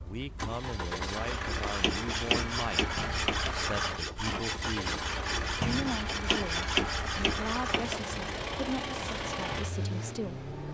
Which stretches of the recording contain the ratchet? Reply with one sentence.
The ratchet can be heard from 1.6 to 3.5 s and from 6.1 to 8.0 s.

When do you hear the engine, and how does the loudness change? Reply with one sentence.
You can hear the engine from 0.0 to 10.6 s, at a steady volume.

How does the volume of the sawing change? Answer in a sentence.
The volume of the sawing stays about the same.